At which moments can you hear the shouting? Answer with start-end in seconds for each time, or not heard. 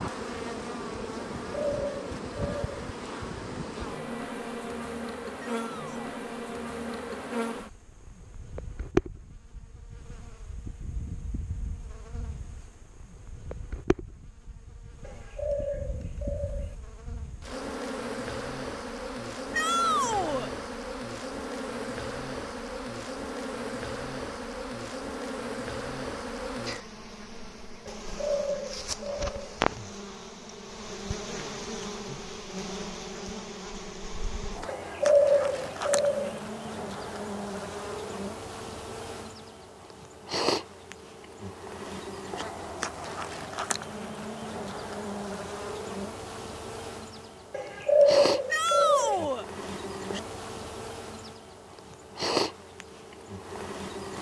5.3-6.0, 19.5-20.5, 48.5-49.5.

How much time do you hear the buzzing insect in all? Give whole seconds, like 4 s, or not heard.
54 s.